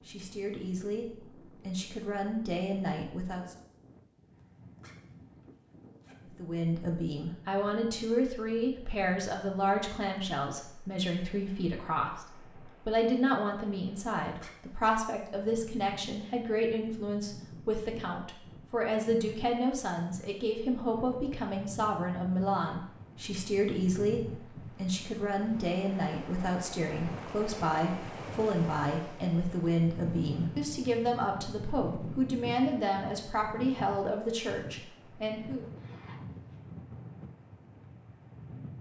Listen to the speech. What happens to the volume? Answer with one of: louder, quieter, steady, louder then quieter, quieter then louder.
steady.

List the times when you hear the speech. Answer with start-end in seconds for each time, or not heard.
0.1-3.5, 6.3-35.6.